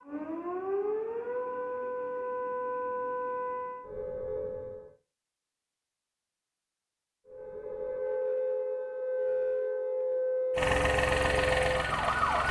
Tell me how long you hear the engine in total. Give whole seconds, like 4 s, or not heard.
2 s.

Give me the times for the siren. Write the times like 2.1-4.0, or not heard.
0.0-4.9, 7.2-12.4.